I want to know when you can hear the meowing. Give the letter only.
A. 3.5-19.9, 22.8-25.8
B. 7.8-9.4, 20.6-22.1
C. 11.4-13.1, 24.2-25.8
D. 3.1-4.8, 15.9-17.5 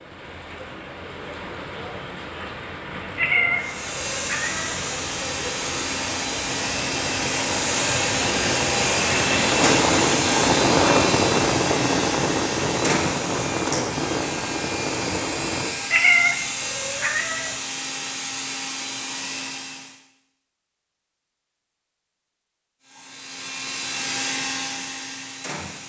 D.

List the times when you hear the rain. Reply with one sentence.
You can hear the rain from 0.0 to 15.8 s.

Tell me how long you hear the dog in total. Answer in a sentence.
The dog can't be heard in this clip.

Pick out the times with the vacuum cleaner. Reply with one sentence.
You can hear the vacuum cleaner from 3.5 to 19.9 s and from 22.8 to 25.8 s.